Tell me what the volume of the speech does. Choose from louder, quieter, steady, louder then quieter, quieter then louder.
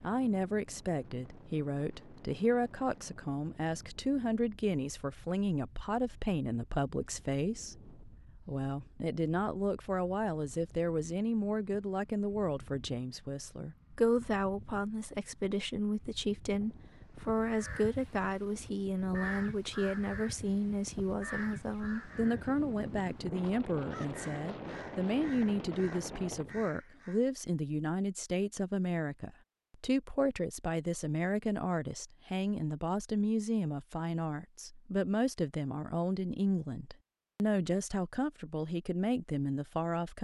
steady.